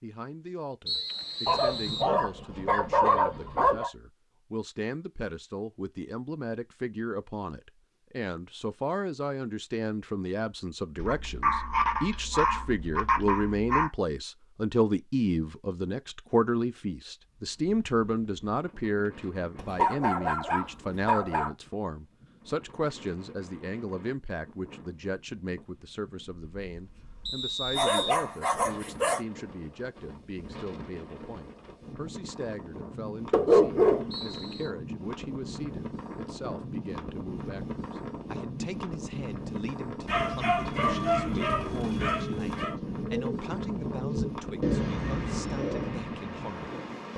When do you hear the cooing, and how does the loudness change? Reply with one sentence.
You can hear the cooing from 40.6 to 45.9 s, getting louder.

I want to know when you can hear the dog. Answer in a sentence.
The dog can be heard from 1.4 to 3.9 s, from 10.9 to 13.9 s, from 19.6 to 21.5 s, from 27.7 to 29.2 s, from 33.3 to 34.5 s and from 40.0 to 42.8 s.